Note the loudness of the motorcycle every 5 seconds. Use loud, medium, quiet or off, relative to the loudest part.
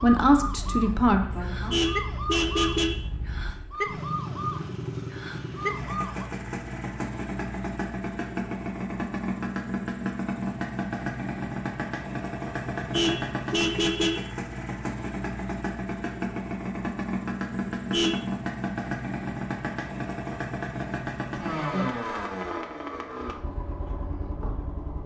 medium, loud, loud, loud, loud.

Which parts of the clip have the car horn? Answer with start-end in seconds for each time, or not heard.
1.3-3.0, 12.8-14.3, 17.8-18.2.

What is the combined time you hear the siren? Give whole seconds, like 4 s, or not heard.
6 s.